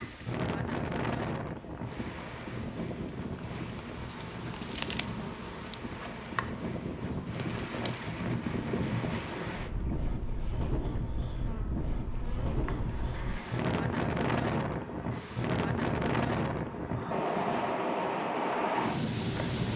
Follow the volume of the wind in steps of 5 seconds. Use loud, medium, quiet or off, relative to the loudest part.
medium, medium, loud, loud.